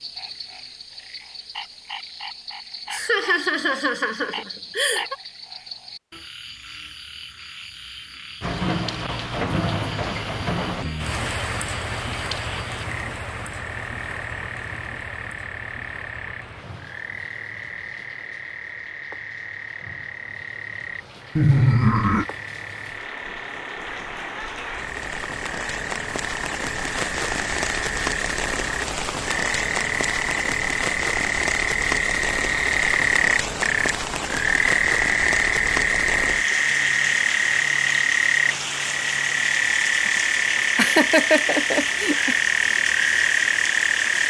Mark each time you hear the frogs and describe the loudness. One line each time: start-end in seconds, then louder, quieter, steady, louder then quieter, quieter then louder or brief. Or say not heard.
0.0-44.2 louder.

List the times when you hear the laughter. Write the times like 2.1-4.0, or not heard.
2.9-5.2, 21.4-22.2, 40.0-42.4.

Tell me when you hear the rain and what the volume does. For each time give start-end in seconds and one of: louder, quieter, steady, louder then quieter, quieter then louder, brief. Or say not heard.
8.4-44.2 quieter then louder.